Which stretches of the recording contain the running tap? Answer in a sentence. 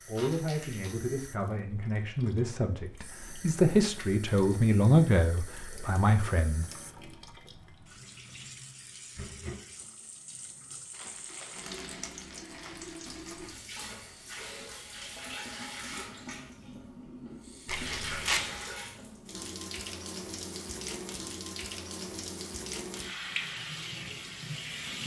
The running tap can be heard from 0.0 to 25.0 s.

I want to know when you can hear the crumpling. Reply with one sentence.
The crumpling can be heard from 0.1 to 0.9 s, from 10.9 to 13.3 s and from 17.6 to 18.6 s.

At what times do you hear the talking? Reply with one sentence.
You can hear the talking from 0.1 to 6.7 s.